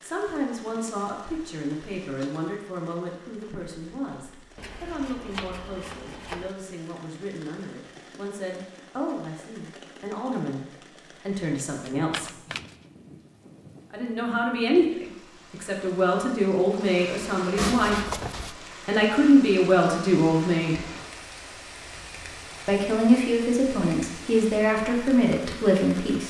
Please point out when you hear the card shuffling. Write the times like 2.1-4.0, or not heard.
4.5-6.5, 11.8-12.8, 17.6-18.6.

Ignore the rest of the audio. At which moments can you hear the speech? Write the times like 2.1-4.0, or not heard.
0.0-12.3, 13.9-17.9, 18.9-20.9, 22.6-26.2.